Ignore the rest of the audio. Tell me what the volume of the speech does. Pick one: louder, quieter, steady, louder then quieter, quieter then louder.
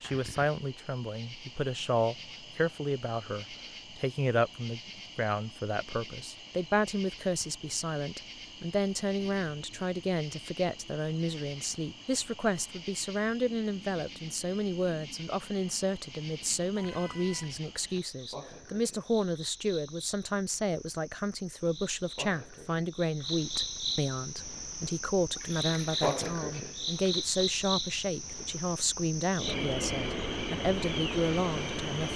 steady.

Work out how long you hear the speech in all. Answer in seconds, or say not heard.
32 s.